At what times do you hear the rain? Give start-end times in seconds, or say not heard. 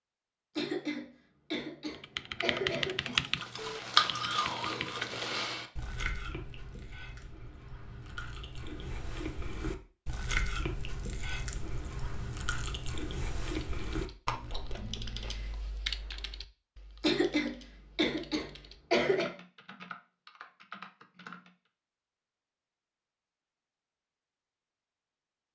not heard.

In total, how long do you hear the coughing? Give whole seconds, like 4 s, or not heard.
5 s.